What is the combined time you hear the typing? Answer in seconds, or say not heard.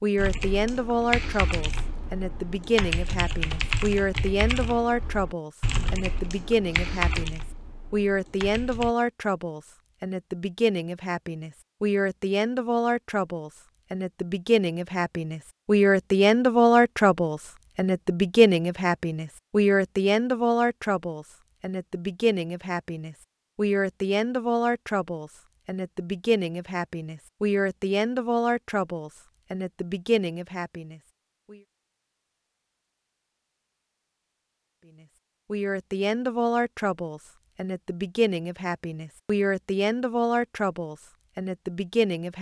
9 s.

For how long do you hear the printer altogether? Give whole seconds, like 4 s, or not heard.
not heard.